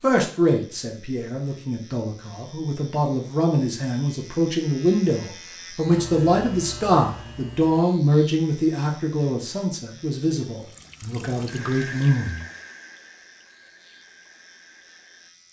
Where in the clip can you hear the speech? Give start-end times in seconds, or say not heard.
0.0-12.4.